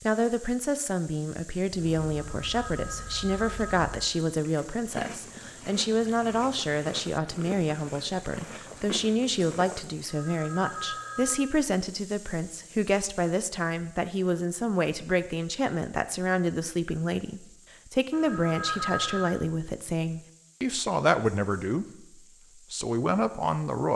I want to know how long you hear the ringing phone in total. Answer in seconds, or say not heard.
5 s.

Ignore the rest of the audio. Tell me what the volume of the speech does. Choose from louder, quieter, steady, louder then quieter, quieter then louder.
steady.